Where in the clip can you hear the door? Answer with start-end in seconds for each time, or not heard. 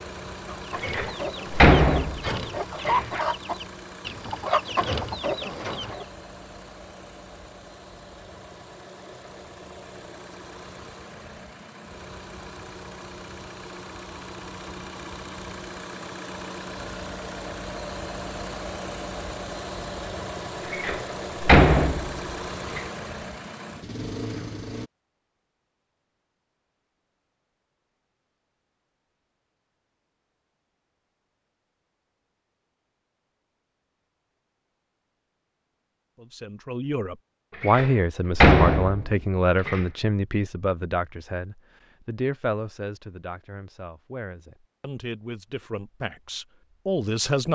0.8-3.2, 20.7-22.9, 37.6-39.9.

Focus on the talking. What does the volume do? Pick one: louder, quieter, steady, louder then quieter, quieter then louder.
quieter then louder.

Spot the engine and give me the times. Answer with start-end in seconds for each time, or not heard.
0.0-24.9.